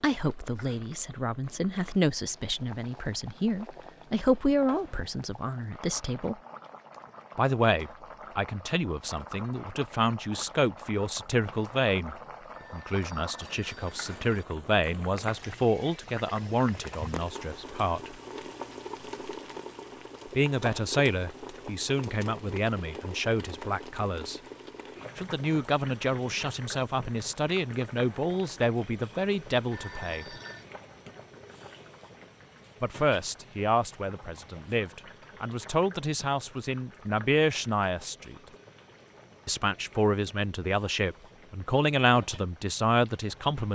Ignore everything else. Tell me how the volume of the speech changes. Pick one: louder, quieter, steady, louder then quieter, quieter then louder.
steady.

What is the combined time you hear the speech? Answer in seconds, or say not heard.
36 s.